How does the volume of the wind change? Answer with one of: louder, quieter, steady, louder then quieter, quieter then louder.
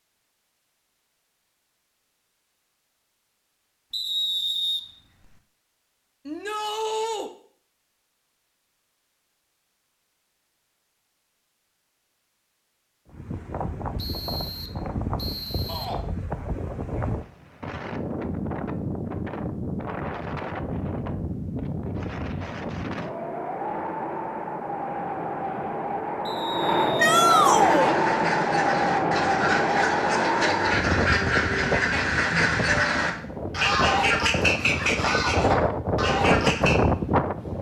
louder.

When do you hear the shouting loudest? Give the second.
27 s.